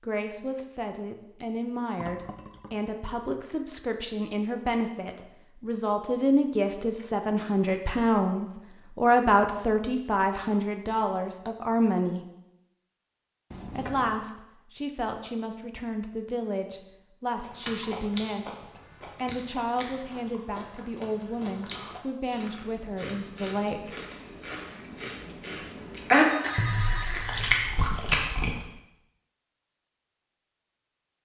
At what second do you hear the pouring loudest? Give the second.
27 s.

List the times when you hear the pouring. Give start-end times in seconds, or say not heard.
1.9-2.9, 13.5-14.2, 26.4-27.6.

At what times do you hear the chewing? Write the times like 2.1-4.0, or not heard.
17.4-28.6.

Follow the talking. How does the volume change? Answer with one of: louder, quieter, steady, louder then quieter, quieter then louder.
louder then quieter.